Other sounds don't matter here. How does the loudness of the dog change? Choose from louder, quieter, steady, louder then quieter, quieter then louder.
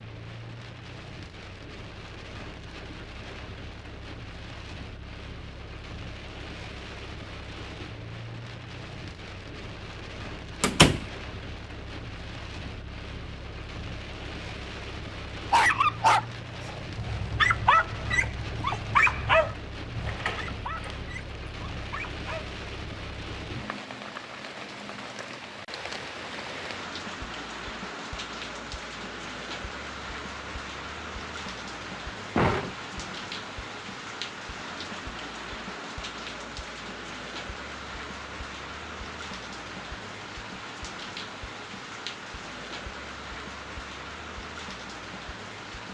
quieter.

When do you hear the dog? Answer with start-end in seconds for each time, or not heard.
15.3-22.6.